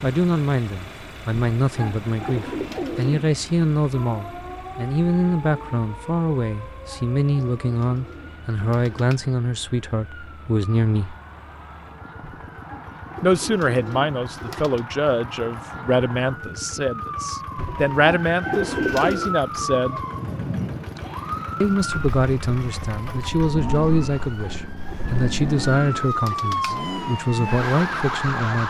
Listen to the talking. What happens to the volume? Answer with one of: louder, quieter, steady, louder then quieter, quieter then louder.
steady.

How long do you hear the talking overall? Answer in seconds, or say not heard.
25 s.